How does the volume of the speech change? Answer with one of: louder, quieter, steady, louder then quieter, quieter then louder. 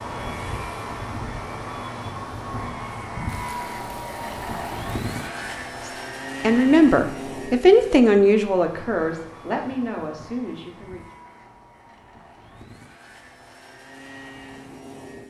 quieter.